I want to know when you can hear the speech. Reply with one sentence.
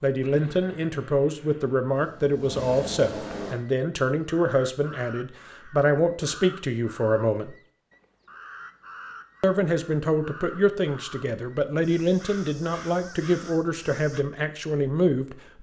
The speech can be heard from 0.0 to 7.5 s and from 9.4 to 15.5 s.